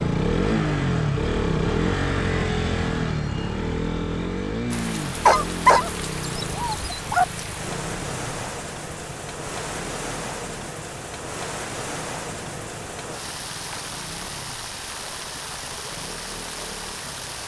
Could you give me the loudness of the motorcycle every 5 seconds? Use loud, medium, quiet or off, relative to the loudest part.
loud, medium, quiet, quiet.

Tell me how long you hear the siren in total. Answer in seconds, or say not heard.
not heard.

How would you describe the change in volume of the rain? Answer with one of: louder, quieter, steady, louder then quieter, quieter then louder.
steady.